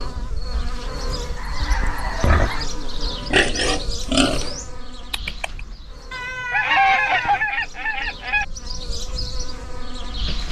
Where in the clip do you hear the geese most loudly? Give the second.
7 s.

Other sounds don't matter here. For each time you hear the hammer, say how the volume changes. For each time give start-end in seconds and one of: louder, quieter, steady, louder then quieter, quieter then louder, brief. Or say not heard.
not heard.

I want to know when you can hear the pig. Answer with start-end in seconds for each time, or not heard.
2.2-5.6.